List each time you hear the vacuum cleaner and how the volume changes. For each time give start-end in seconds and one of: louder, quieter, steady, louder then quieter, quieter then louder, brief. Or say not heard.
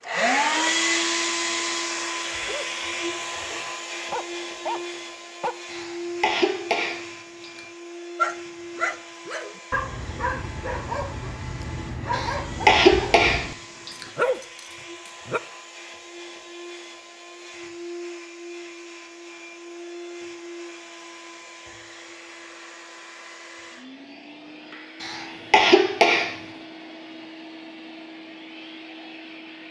0.0-29.6 quieter.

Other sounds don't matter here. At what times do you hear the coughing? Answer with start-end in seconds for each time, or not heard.
5.7-7.6, 12.1-14.1, 25.0-26.4.